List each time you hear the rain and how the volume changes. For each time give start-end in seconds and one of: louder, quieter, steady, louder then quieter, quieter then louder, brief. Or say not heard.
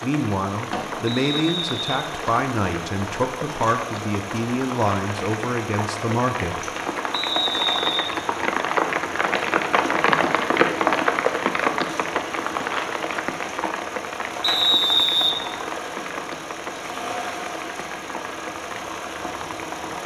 0.0-20.0 louder then quieter.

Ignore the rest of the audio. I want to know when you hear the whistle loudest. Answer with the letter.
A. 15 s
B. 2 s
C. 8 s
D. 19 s
A.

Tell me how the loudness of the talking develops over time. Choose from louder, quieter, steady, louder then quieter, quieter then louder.
steady.